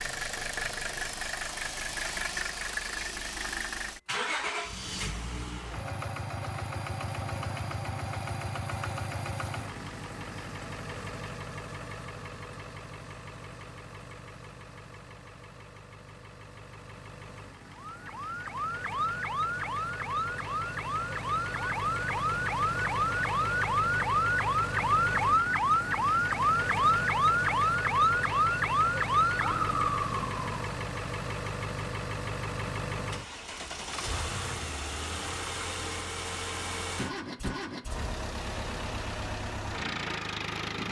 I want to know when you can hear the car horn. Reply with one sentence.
You can't hear the car horn here.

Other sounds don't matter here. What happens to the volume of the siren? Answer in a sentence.
The loudness of the siren goes up.